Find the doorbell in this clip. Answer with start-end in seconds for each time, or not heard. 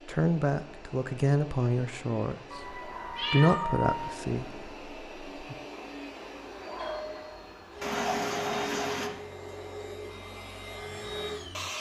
6.6-7.8.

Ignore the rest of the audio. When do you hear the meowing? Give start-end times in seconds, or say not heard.
2.5-4.2, 7.8-9.1.